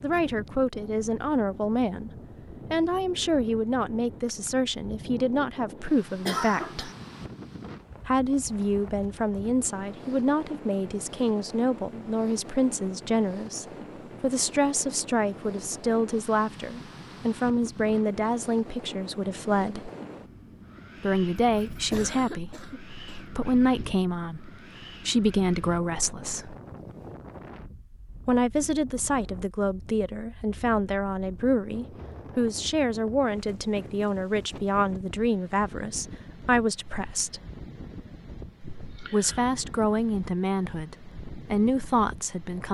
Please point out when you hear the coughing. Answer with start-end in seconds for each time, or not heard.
6.2-7.0, 21.6-23.2, 38.6-39.5.